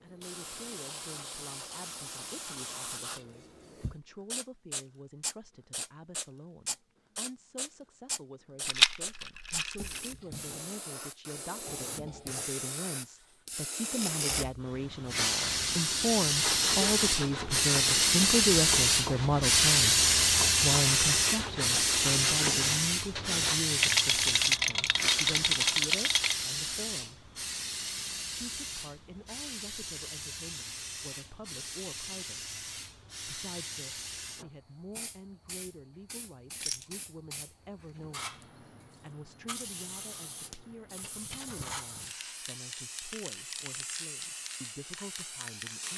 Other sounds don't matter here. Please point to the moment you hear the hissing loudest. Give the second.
20 s.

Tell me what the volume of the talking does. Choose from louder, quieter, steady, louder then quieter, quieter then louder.
louder then quieter.